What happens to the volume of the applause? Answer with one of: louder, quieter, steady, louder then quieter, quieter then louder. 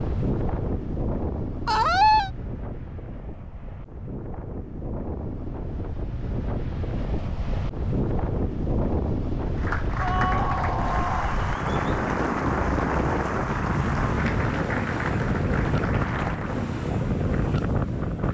steady.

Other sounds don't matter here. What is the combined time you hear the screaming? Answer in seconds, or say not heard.
2 s.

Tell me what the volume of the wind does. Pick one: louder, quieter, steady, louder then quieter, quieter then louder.
louder.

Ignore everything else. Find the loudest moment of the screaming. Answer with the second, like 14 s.
2 s.